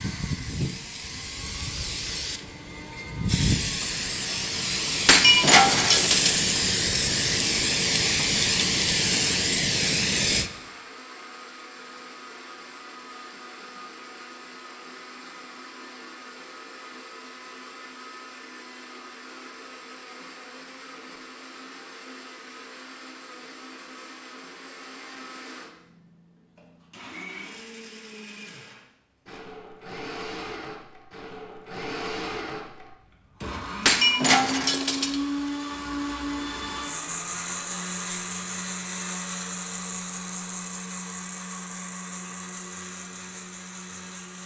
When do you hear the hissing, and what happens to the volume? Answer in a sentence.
You can hear the hissing from 0.0 to 10.5 s, getting louder.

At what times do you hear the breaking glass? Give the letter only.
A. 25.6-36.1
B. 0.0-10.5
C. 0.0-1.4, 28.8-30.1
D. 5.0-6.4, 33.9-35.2
D.